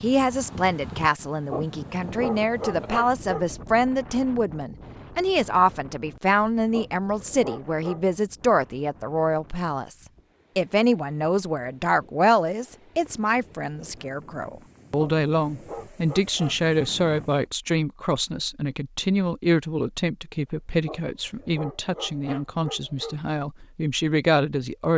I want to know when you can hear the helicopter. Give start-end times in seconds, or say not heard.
not heard.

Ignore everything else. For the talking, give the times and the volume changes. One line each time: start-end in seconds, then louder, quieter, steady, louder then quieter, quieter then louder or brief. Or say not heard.
0.0-24.9 steady.